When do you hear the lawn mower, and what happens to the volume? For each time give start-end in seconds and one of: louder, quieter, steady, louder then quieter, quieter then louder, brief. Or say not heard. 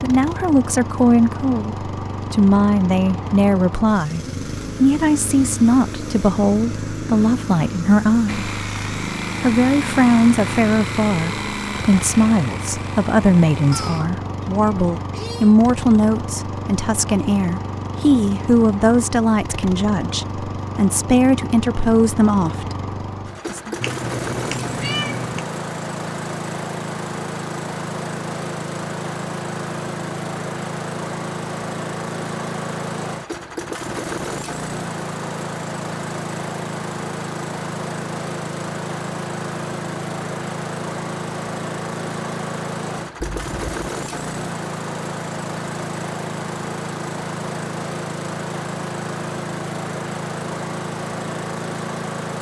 0.0-52.3 steady.